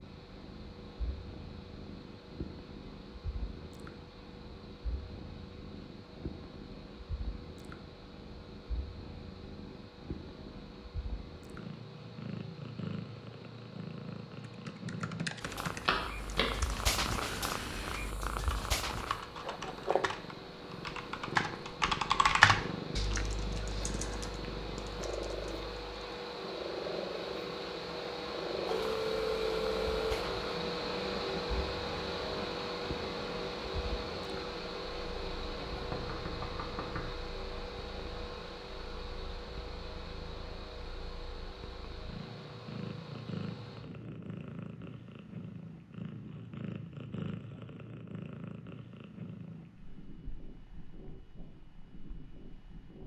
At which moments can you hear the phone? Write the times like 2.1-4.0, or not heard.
15.8-16.4, 28.6-30.2.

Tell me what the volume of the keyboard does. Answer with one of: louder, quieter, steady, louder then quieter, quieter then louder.
louder then quieter.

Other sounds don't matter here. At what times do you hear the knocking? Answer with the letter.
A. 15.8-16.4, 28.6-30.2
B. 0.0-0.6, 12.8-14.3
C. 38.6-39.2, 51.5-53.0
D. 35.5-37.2
D.